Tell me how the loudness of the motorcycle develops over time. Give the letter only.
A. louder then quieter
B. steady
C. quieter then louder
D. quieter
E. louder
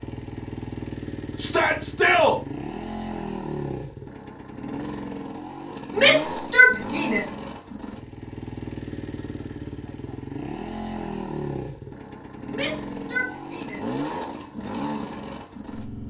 B.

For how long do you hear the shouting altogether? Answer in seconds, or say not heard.
4 s.